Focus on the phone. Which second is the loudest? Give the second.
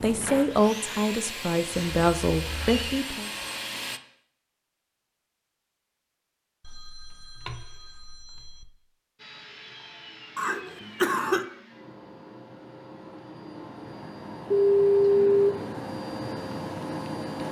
15 s.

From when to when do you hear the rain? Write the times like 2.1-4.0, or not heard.
not heard.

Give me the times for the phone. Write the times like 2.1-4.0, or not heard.
1.7-3.0, 6.7-8.7, 14.5-15.5.